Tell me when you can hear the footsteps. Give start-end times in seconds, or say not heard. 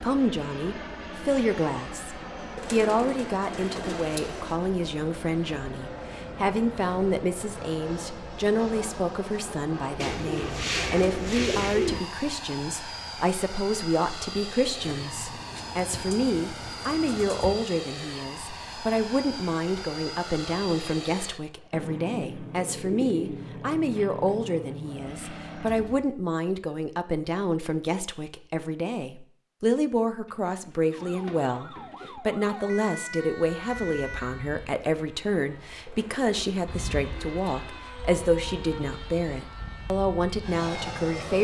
not heard.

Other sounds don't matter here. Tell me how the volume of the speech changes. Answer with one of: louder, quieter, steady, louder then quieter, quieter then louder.
steady.